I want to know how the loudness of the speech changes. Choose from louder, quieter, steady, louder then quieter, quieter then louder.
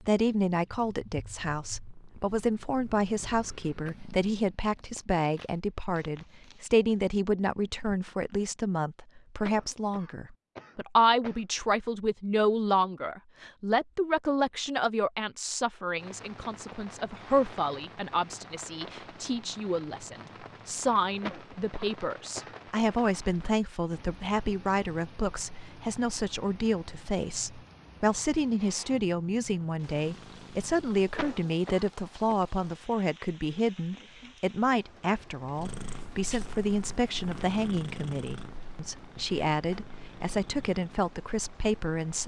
steady.